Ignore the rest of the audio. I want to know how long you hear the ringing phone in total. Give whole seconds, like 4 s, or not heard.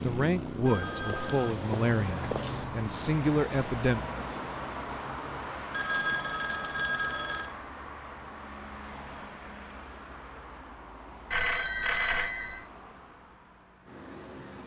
5 s.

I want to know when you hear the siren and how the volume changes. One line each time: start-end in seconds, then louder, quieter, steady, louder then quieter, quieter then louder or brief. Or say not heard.
not heard.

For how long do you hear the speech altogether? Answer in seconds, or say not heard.
4 s.